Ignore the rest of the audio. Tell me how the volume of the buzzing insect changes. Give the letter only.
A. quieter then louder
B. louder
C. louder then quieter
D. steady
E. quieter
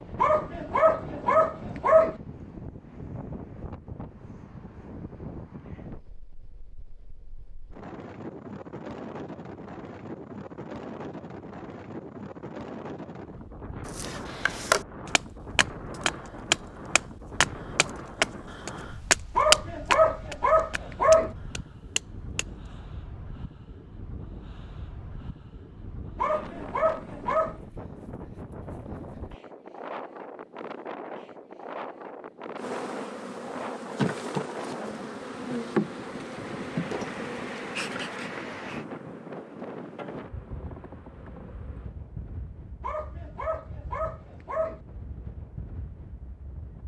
E.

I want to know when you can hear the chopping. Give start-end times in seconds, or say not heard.
13.8-22.8.